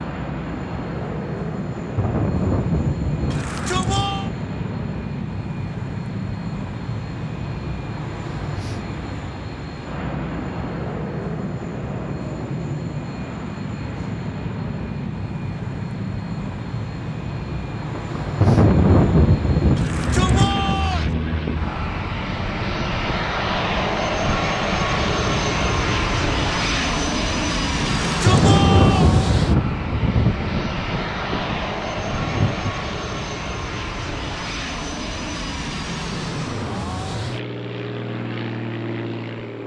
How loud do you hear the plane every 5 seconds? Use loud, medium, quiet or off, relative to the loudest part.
medium, medium, medium, medium, loud, loud, medium, medium.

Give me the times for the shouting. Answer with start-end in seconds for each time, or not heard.
3.3-4.3, 19.8-21.1, 28.0-29.1.